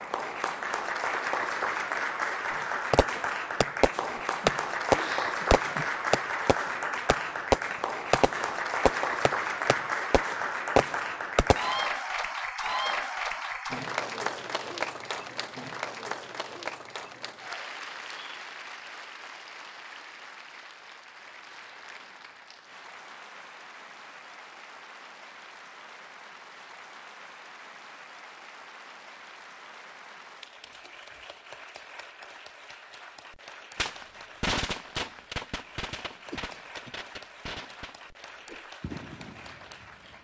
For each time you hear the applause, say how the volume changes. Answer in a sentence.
You can hear the applause from 0.0 to 40.1 s, getting quieter.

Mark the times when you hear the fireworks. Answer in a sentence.
You can hear the fireworks from 2.9 to 11.8 s and from 33.8 to 40.1 s.